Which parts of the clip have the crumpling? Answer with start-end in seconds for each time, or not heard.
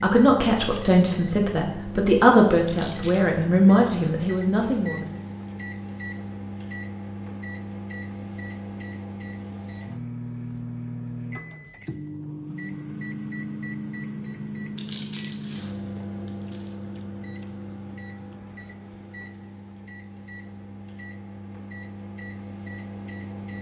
2.6-3.2, 14.8-16.8.